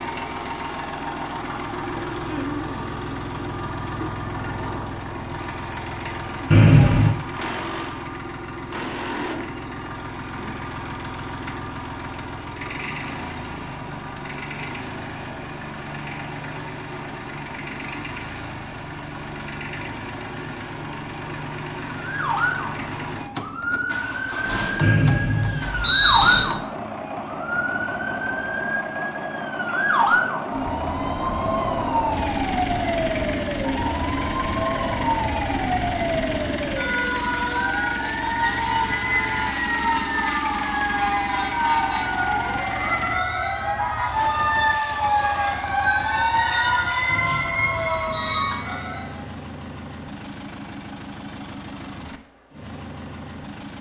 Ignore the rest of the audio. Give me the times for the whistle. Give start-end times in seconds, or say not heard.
6.5-7.1, 24.8-26.4, 47.0-48.6.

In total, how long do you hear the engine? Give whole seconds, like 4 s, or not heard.
54 s.